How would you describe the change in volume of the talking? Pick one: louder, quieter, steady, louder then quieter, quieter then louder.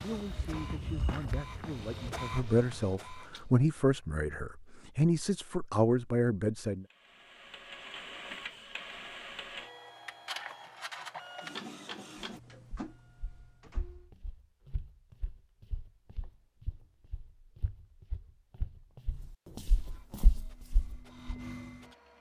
louder.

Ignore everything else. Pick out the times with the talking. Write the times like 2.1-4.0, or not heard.
0.0-6.8.